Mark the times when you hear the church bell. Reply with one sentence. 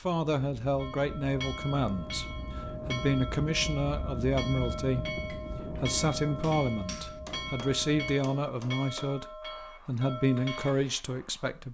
The church bell can be heard from 0.8 to 10.8 s.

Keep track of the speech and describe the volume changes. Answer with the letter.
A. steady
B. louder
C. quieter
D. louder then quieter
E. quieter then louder
A.